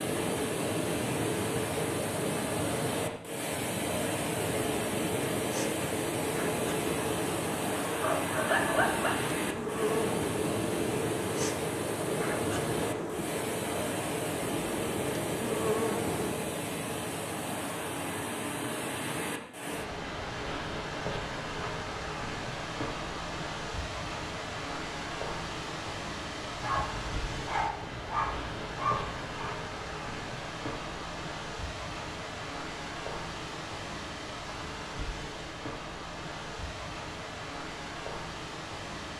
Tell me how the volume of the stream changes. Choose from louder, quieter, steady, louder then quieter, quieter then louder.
quieter.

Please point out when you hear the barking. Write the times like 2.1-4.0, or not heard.
8.0-9.2, 26.6-29.3.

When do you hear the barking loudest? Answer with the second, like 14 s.
9 s.